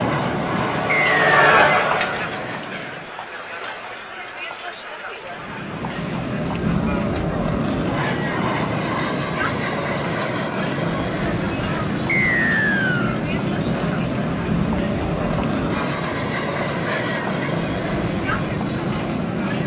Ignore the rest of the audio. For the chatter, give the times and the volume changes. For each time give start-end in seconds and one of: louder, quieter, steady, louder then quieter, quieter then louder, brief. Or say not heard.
0.0-19.6 quieter.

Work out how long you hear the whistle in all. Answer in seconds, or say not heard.
2 s.